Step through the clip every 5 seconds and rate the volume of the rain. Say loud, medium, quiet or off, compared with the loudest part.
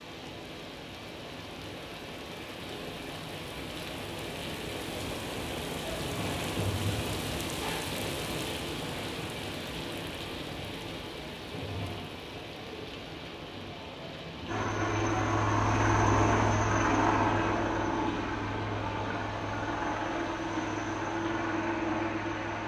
medium, loud, medium, medium, medium.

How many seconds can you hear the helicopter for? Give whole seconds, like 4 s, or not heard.
8 s.